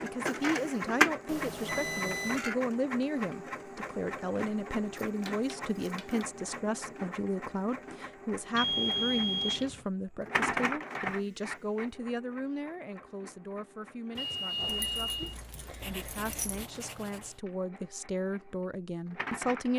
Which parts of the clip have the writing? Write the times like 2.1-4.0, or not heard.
15.1-17.4.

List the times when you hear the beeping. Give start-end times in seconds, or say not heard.
1.2-2.5, 8.6-9.8, 14.2-15.3.